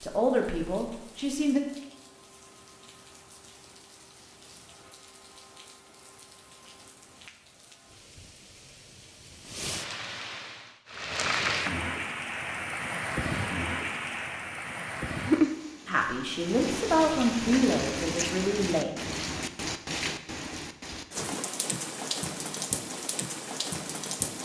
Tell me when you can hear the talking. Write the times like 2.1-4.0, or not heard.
0.0-1.6, 15.8-18.9.